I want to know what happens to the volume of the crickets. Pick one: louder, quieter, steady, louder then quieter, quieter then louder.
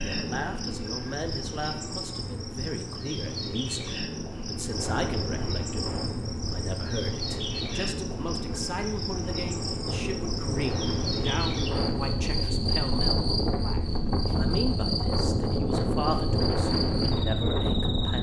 steady.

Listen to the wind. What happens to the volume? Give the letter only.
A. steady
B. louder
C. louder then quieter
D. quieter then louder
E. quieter
B.